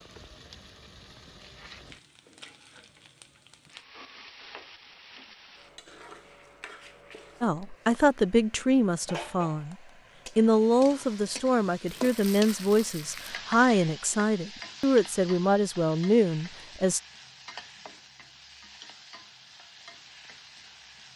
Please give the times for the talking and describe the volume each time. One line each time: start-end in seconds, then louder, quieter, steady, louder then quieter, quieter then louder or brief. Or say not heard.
7.4-9.8 brief
10.3-17.0 steady.